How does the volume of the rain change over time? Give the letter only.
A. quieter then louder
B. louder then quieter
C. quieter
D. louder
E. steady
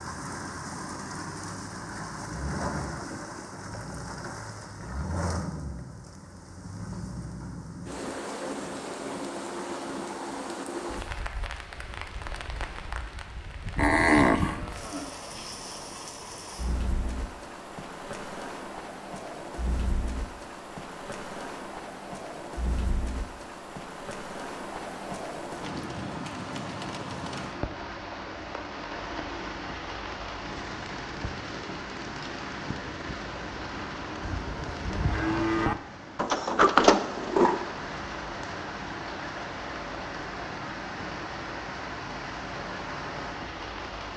E.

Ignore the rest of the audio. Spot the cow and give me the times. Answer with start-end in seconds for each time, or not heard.
13.8-15.1, 34.4-35.8.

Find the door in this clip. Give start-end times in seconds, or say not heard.
36.1-37.6.